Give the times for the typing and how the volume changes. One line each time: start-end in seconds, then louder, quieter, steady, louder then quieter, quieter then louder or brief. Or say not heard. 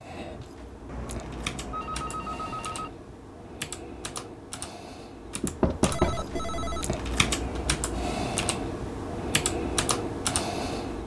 0.0-11.0 louder.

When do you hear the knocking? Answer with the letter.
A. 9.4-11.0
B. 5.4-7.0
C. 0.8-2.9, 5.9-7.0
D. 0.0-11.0
B.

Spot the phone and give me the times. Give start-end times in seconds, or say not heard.
0.8-2.9, 5.9-7.0.